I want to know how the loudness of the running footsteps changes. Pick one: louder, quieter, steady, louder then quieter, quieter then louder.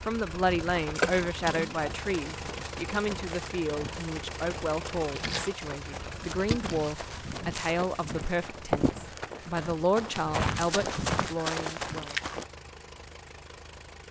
louder.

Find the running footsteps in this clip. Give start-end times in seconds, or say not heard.
0.5-12.4.